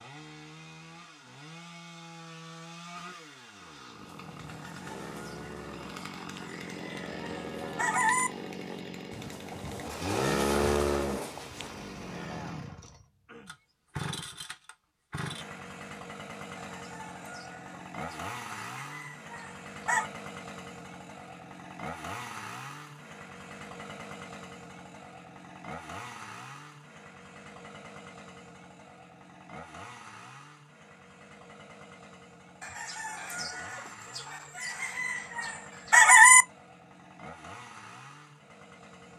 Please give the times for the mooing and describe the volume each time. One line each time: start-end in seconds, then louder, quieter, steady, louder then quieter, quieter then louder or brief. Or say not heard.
3.9-12.6 louder.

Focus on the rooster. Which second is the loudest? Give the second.
36 s.